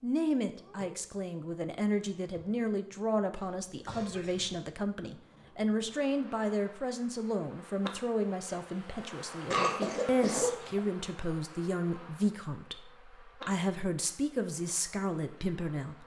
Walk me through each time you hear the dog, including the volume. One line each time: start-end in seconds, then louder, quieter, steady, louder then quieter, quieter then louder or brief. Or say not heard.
not heard.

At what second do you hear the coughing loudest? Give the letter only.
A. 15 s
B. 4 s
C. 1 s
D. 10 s
D.